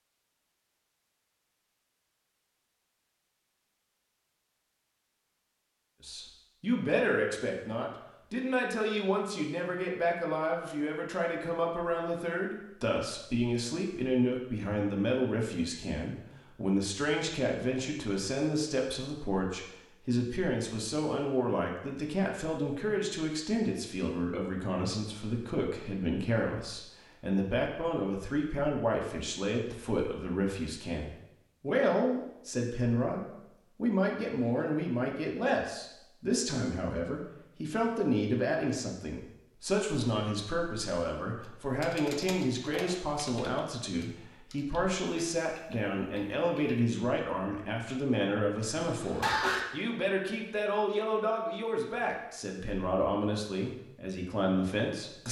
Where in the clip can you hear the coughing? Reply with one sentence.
The coughing can be heard from 48.9 to 49.6 s.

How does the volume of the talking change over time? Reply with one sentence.
The loudness of the talking stays about the same.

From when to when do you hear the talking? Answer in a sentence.
The talking can be heard from 6.0 to 55.2 s.